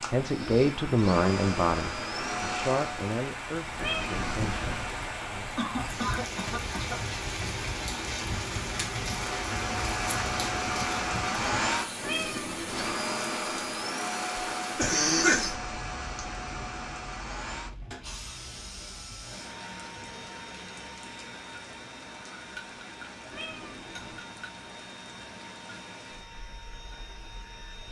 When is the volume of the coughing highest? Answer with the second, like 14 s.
15 s.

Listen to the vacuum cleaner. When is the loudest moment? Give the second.
11 s.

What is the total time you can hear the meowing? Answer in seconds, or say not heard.
3 s.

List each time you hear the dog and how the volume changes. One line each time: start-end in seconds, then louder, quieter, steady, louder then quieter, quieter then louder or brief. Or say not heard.
not heard.